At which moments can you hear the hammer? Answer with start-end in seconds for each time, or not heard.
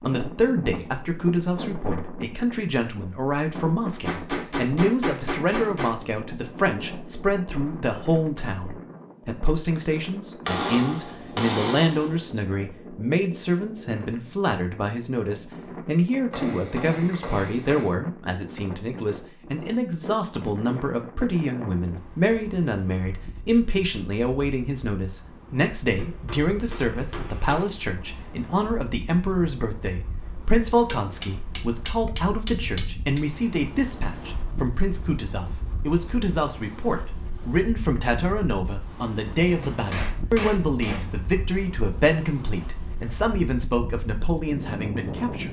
3.9-6.0, 10.4-12.2, 16.3-17.9, 25.9-27.6, 30.7-33.2, 39.6-41.0.